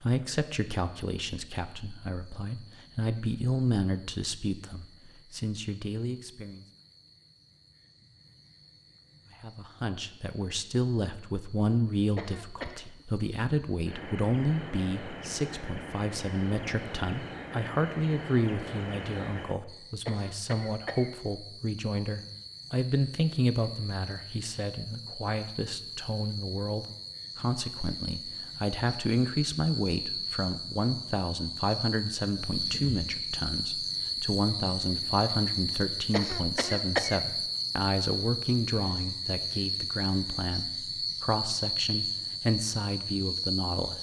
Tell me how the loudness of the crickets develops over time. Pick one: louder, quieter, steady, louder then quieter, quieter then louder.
louder.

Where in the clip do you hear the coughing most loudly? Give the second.
37 s.